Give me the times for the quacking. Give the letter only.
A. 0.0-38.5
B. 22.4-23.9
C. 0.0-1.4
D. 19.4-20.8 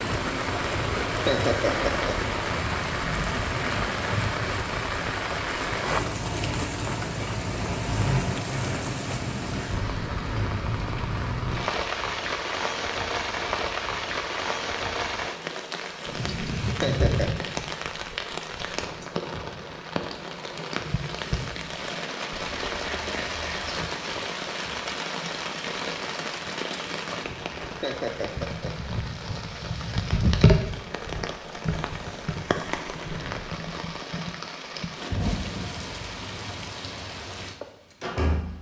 B.